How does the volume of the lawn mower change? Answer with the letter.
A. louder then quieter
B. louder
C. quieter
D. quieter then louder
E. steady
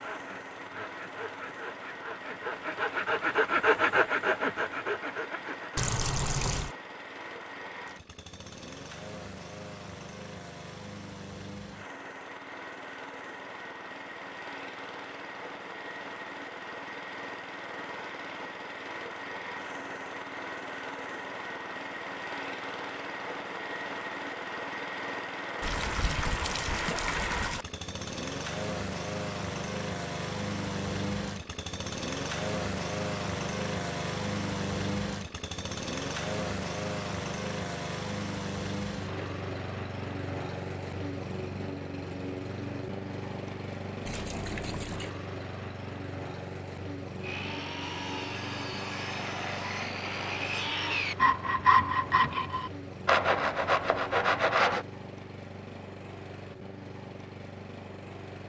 A.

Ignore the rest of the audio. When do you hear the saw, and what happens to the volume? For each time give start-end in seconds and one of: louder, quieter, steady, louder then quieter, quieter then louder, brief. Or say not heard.
0.0-5.8 louder then quieter
47.2-54.9 louder.